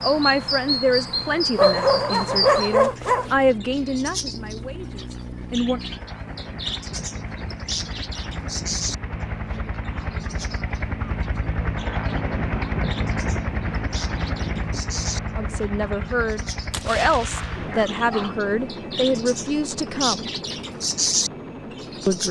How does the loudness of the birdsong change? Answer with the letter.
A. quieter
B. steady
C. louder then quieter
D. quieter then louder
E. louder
D.